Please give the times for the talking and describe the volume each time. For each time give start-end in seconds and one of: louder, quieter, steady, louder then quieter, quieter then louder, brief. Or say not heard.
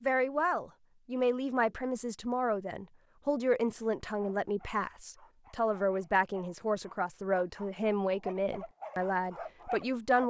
0.0-10.2 steady.